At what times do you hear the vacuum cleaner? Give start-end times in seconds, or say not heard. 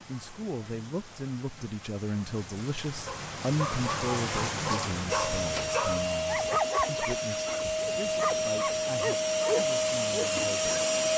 5.0-11.1.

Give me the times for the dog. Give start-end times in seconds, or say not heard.
3.0-10.8.